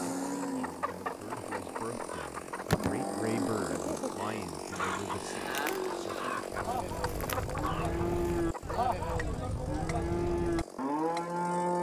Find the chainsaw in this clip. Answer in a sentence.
The chainsaw can be heard from 0.0 to 11.7 s.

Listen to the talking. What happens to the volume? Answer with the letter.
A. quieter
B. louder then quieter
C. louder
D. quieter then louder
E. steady
B.